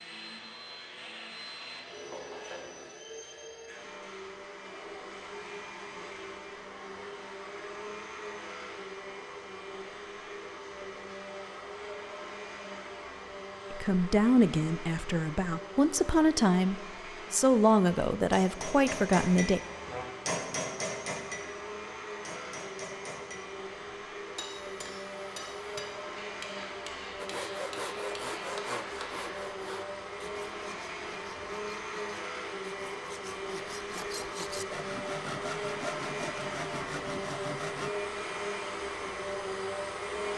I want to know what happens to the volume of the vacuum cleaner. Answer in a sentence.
The volume of the vacuum cleaner goes up.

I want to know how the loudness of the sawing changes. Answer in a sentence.
The volume of the sawing goes down, then up.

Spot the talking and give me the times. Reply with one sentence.
The talking can be heard from 13.7 to 19.6 s.